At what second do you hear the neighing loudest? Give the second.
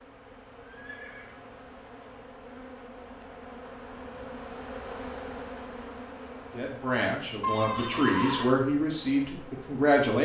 8 s.